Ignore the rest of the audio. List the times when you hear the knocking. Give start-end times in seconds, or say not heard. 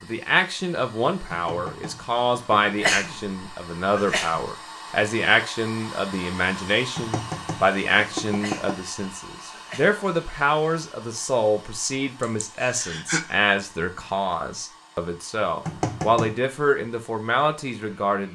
1.3-2.8, 7.0-8.8, 15.6-16.4.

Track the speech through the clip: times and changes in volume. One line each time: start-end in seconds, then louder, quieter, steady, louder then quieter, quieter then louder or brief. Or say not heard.
0.0-18.3 steady.